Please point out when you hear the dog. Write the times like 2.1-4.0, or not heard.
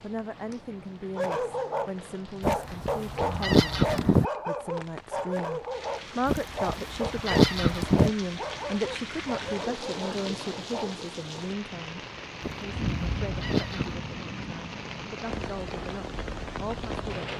1.1-11.0.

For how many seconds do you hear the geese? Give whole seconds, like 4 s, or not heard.
5 s.